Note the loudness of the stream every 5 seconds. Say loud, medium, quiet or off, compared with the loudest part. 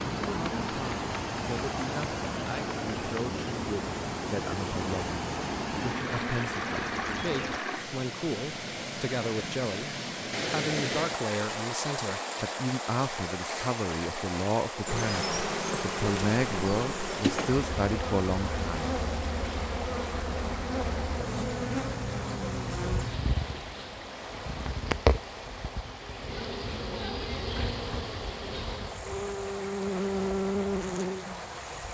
loud, loud, loud, loud, medium, medium, medium.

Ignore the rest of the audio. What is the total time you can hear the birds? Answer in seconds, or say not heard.
not heard.